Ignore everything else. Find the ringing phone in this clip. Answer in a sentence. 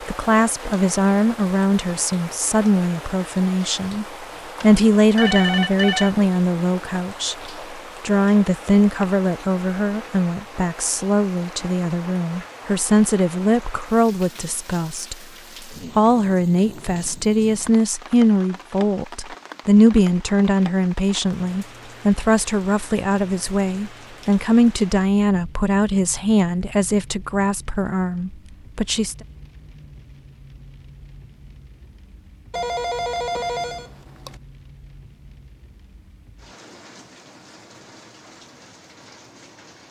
The ringing phone can be heard from 4.6 to 6.2 s and from 32.5 to 34.4 s.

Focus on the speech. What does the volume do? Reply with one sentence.
The loudness of the speech stays about the same.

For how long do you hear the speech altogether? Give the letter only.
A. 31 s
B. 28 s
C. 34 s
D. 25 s
B.